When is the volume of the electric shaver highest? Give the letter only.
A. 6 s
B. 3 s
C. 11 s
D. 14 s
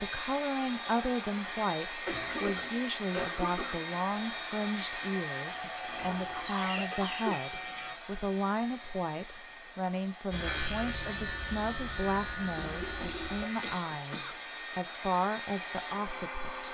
C.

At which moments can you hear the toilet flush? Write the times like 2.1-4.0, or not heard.
2.1-2.8, 5.8-6.5, 12.6-13.6.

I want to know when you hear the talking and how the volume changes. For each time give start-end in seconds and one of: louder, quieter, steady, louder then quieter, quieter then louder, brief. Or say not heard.
0.0-16.6 steady.